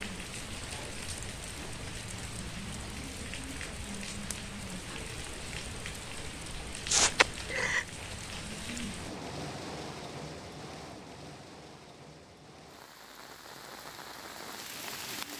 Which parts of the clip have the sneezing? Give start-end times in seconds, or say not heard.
6.9-7.8.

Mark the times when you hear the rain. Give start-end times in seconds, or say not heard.
0.0-15.3.